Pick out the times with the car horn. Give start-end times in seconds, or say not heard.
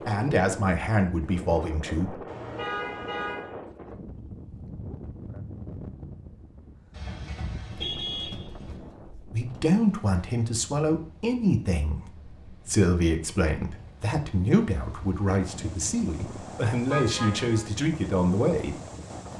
2.2-3.5, 6.9-8.8, 16.9-17.7.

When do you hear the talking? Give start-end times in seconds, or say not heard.
0.1-2.1, 9.3-18.8.